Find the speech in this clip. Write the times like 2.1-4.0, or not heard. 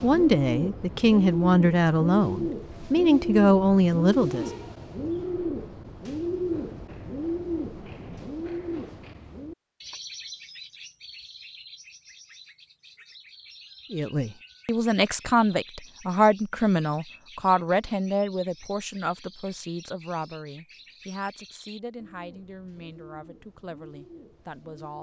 0.0-4.5, 13.9-24.9.